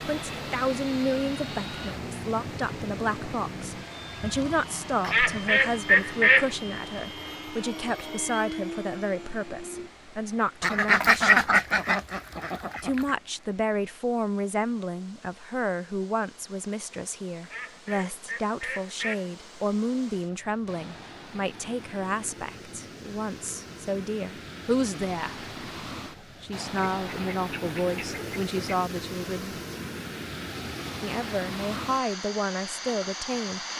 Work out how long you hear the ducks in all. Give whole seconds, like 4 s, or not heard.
8 s.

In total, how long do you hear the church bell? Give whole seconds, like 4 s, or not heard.
not heard.